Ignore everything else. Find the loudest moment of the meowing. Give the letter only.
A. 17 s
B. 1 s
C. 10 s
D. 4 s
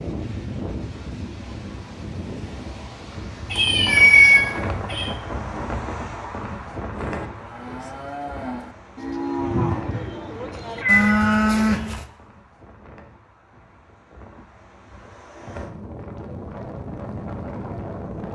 D.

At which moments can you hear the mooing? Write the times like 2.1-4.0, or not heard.
6.9-12.1.